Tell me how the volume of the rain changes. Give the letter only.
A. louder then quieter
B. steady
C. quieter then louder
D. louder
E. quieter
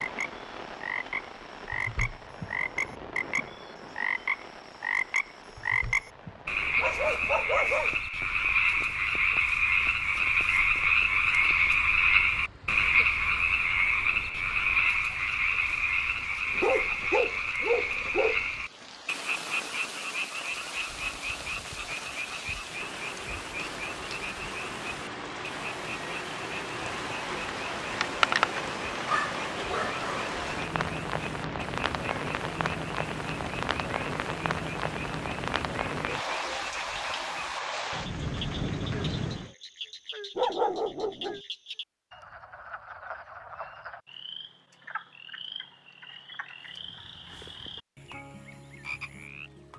C.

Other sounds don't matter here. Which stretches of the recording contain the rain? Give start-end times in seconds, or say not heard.
0.0-39.5.